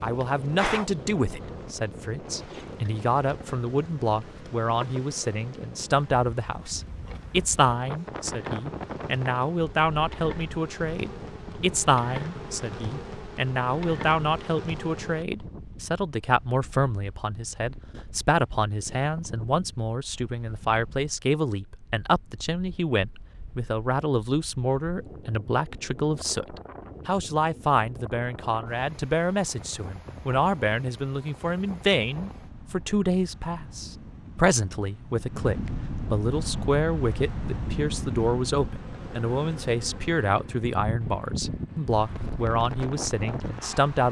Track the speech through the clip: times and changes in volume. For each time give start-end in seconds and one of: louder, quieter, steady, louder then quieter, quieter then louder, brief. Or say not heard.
0.0-44.0 steady.